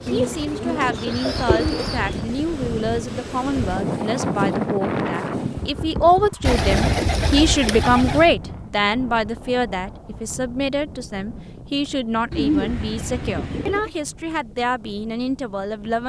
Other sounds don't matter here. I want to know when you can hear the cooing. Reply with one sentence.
The cooing can be heard from 0.1 to 2.2 s, from 6.5 to 8.2 s and from 12.3 to 13.9 s.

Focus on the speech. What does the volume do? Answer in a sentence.
The volume of the speech goes up, then down.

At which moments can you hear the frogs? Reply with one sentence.
The frogs can't be heard in this clip.